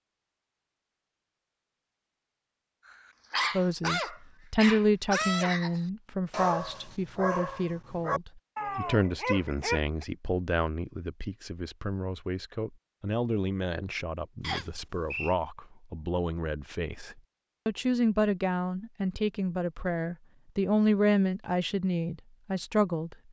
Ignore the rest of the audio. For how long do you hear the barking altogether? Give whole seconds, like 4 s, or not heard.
7 s.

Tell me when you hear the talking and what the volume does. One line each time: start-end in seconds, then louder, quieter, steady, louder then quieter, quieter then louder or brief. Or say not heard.
3.5-23.1 quieter then louder.